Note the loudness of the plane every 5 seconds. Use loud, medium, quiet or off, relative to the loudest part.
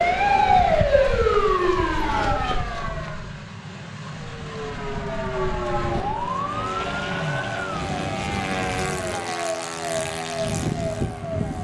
medium, loud, loud.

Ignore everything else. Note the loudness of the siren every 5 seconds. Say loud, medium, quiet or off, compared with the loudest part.
loud, medium, medium.